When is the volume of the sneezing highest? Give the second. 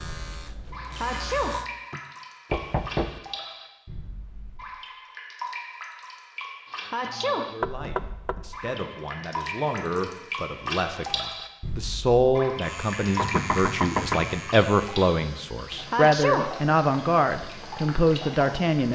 16 s.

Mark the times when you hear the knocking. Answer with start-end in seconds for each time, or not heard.
2.5-3.2, 7.6-8.4, 13.2-14.3.